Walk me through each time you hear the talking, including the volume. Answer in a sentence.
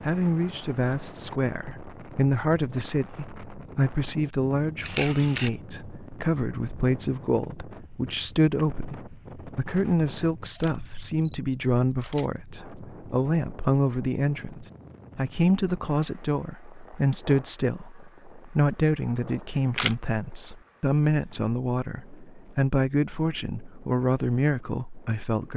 The talking can be heard from 0.0 to 25.5 s, at a steady volume.